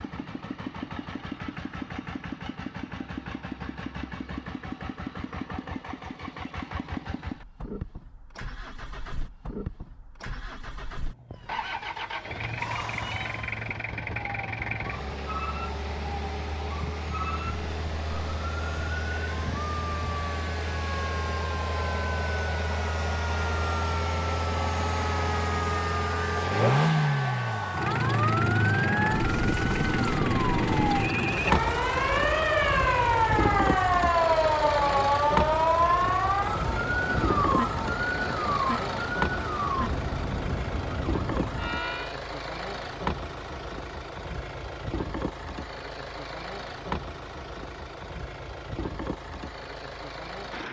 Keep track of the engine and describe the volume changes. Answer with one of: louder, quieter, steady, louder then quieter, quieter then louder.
louder then quieter.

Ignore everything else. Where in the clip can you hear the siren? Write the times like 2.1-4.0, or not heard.
11.3-42.2.